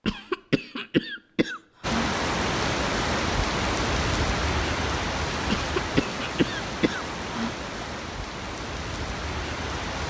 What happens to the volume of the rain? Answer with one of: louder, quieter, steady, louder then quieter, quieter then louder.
quieter.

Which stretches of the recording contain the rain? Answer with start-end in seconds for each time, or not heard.
1.8-10.0.